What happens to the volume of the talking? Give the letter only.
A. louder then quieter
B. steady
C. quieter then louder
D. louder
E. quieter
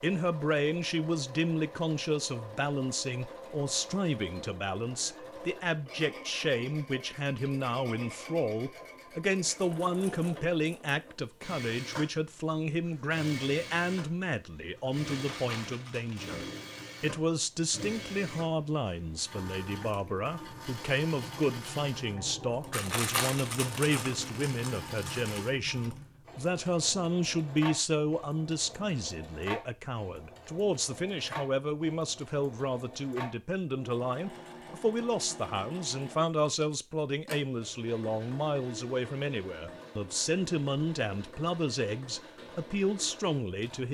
B.